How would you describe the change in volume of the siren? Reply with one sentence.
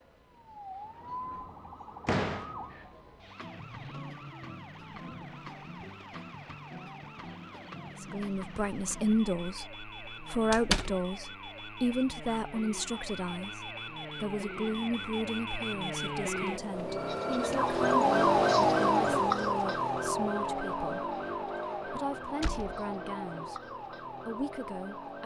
The loudness of the siren goes up, then down.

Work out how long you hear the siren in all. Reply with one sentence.
You can hear the siren for 25 seconds altogether.